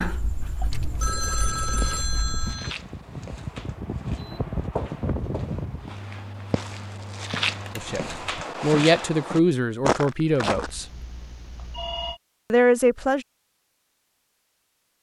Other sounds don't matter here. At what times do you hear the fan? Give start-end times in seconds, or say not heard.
0.1-8.4.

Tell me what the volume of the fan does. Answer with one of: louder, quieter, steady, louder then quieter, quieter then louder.
louder then quieter.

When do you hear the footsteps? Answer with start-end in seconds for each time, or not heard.
1.6-10.7.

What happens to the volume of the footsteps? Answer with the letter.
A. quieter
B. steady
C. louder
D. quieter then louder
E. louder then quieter
C.